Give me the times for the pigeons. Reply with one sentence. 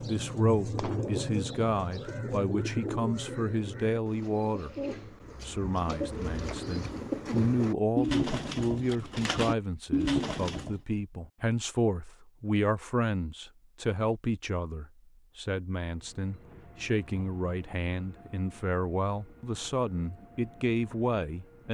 You can hear the pigeons from 0.0 to 10.8 s.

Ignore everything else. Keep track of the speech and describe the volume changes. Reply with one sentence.
The loudness of the speech stays about the same.